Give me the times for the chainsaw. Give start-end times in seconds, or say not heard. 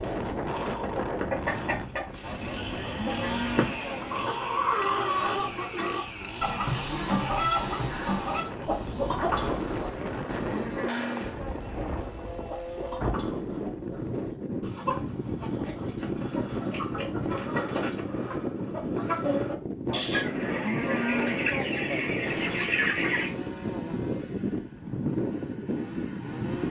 0.0-13.1, 22.2-26.6.